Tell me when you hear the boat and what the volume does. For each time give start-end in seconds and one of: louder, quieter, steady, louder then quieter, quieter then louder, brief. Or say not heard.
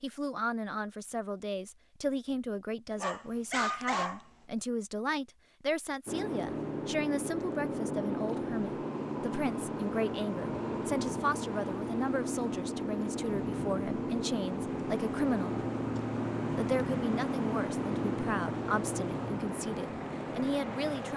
6.0-21.1 steady.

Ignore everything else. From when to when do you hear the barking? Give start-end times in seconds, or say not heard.
3.0-4.2.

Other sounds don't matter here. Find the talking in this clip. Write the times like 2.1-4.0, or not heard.
0.0-15.7, 16.5-21.1.